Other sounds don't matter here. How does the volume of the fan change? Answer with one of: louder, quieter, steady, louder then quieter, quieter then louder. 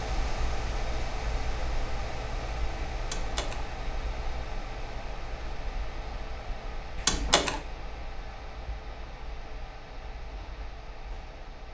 quieter.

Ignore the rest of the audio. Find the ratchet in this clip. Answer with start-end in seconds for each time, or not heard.
not heard.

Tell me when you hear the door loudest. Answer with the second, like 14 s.
7 s.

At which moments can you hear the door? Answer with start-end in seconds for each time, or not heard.
3.0-3.6, 7.0-7.6.